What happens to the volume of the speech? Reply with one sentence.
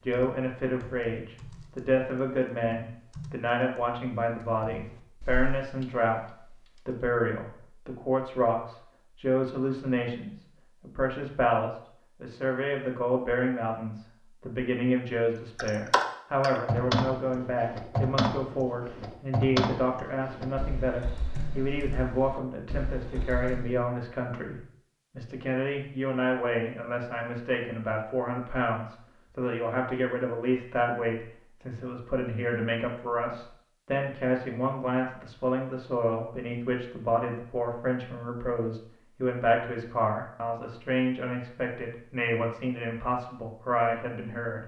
The volume of the speech stays about the same.